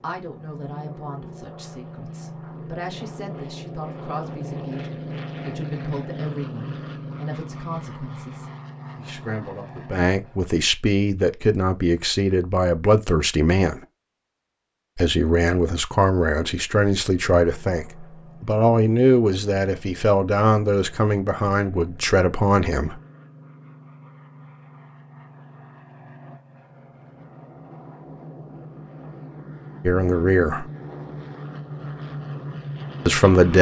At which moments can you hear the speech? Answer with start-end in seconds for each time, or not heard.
0.0-13.8, 14.9-22.9, 29.9-30.6, 33.0-33.5.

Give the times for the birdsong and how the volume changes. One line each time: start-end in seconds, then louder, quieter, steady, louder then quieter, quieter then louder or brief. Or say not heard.
not heard.